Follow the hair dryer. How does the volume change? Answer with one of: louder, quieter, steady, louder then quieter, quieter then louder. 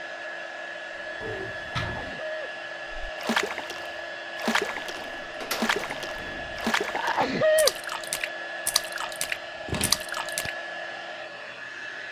steady.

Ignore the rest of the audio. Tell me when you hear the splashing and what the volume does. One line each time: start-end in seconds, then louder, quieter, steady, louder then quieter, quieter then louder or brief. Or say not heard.
3.0-10.6 steady.